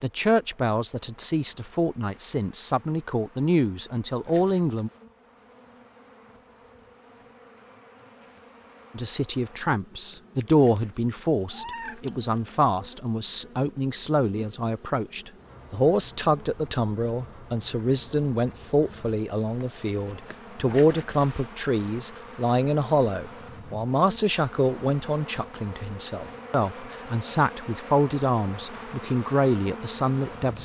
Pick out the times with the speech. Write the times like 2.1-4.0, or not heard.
0.0-4.9, 8.9-30.6.